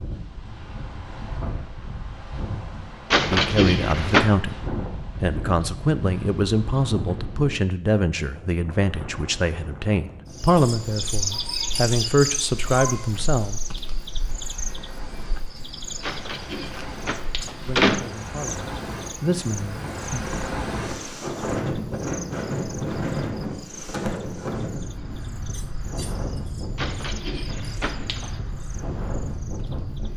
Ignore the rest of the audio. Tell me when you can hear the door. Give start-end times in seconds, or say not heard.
3.1-4.3, 16.0-18.0, 26.8-28.4.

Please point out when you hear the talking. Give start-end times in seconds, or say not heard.
3.2-13.6, 17.6-20.2.